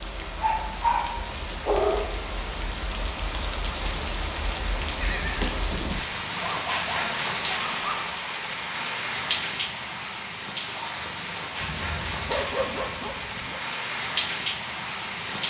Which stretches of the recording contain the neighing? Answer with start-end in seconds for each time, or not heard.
5.0-5.9.